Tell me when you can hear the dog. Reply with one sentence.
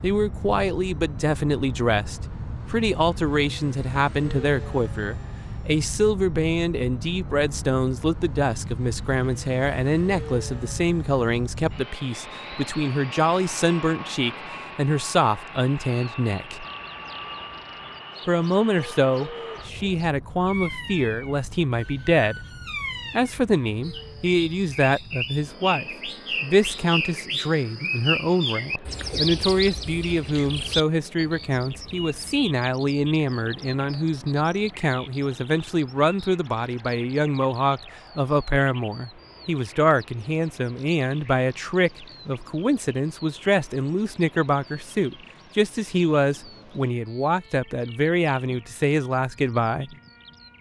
You can't hear the dog here.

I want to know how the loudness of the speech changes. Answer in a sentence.
The volume of the speech stays about the same.